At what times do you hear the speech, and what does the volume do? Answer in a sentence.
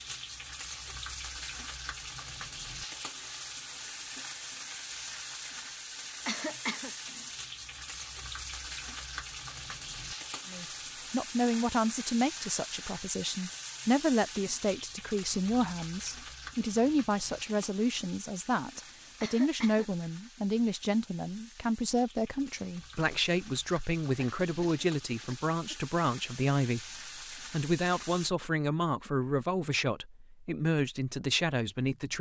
The speech can be heard from 10.4 to 32.1 s, at a steady volume.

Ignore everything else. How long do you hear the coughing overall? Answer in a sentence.
You can hear the coughing for 3 seconds altogether.